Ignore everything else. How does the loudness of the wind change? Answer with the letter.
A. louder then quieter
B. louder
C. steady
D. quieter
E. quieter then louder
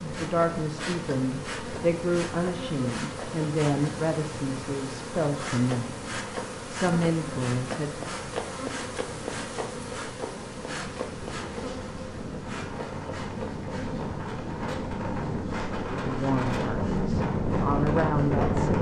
B.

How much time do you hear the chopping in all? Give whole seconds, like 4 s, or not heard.
not heard.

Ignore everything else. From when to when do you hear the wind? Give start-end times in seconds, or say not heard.
0.0-18.7.